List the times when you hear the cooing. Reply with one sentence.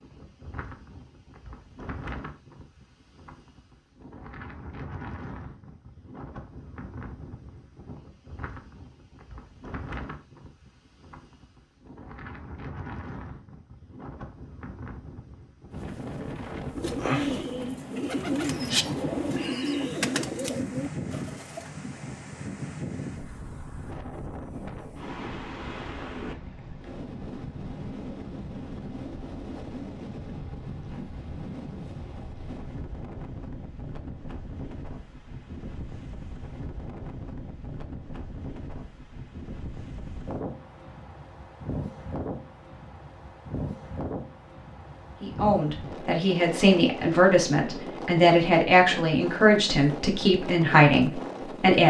You can hear the cooing from 16.7 to 21.7 s.